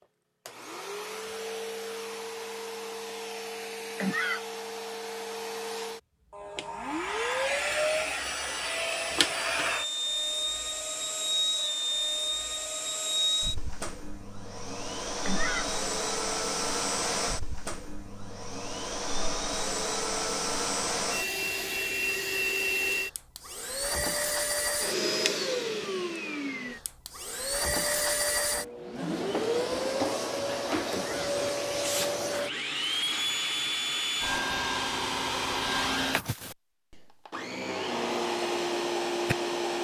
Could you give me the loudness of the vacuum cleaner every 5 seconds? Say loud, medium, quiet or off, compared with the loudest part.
medium, loud, loud, loud, loud, loud, loud, loud.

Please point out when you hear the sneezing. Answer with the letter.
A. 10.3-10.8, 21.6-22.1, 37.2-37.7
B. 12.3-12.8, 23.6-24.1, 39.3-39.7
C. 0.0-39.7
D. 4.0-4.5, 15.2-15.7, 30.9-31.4
D.